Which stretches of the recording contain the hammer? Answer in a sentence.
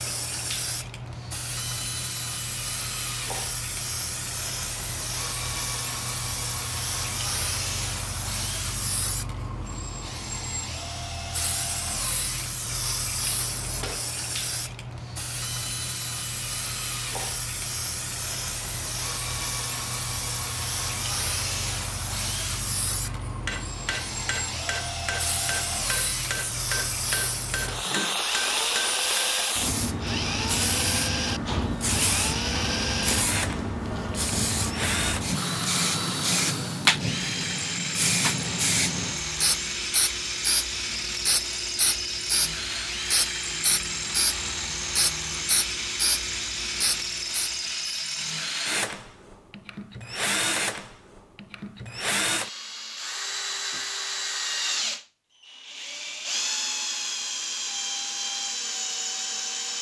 The hammer can be heard from 23.1 to 29.4 s.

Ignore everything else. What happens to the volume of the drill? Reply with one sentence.
The loudness of the drill goes up.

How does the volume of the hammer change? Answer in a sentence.
The volume of the hammer stays about the same.